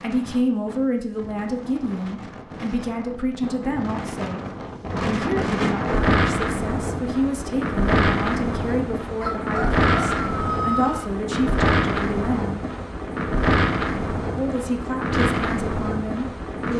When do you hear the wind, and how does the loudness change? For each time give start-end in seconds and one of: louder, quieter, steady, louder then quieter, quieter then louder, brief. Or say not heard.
0.0-16.7 louder.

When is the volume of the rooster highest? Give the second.
11 s.